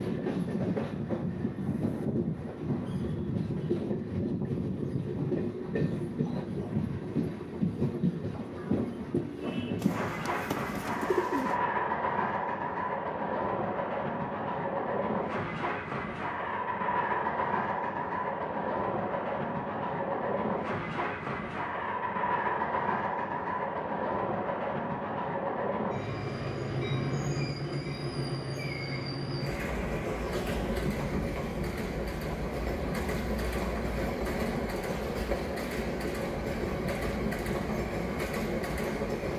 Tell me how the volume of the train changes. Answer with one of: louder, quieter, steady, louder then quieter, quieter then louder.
steady.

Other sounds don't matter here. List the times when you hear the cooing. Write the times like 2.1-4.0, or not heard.
9.8-11.6.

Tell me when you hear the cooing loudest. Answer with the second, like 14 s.
11 s.